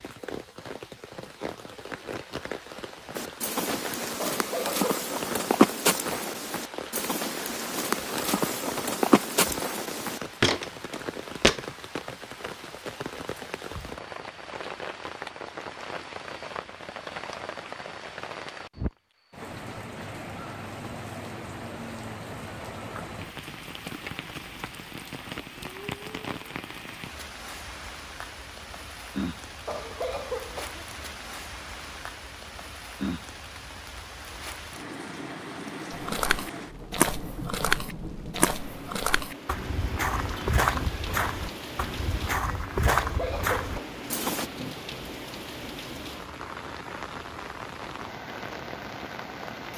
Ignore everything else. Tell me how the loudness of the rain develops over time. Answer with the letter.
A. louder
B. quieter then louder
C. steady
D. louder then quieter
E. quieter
C.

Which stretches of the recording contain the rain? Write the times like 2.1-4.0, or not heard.
0.0-49.7.